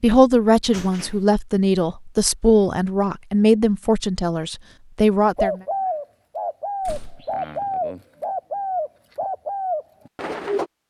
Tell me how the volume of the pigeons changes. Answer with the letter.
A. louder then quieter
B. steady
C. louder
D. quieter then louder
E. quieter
B.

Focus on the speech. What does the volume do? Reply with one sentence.
The loudness of the speech stays about the same.